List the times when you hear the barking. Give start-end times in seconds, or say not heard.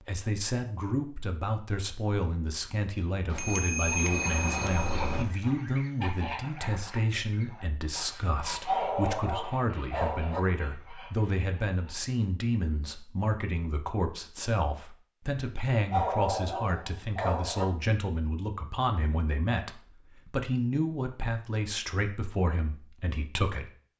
8.7-10.4, 15.9-17.6.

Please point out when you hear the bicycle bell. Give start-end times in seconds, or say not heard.
3.2-5.2.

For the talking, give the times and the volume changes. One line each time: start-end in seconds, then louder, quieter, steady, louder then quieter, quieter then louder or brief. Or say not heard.
0.0-23.7 steady.